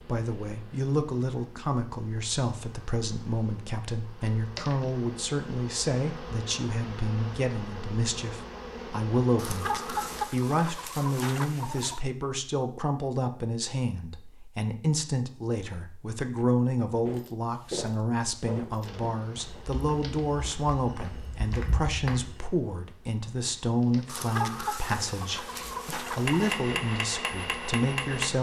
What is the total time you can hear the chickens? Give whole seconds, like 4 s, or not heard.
5 s.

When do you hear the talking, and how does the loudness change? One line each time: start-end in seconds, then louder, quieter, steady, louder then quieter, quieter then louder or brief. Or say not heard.
0.1-28.3 steady.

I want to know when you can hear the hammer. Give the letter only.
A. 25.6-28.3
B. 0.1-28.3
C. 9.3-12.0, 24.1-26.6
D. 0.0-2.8
A.